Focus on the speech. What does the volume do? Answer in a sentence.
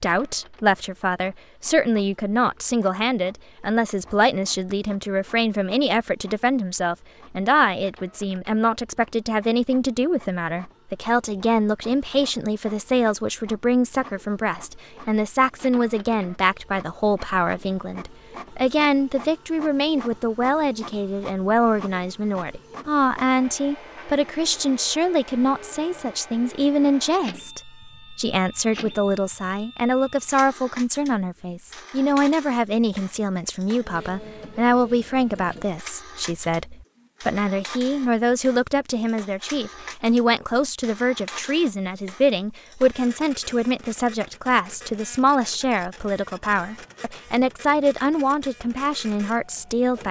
The loudness of the speech stays about the same.